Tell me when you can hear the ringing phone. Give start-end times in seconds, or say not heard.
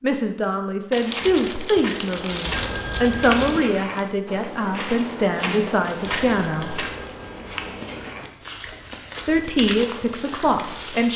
2.5-3.7, 6.1-8.3.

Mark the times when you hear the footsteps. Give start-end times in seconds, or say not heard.
1.0-11.1.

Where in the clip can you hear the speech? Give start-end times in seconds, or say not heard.
0.0-6.8, 9.2-11.1.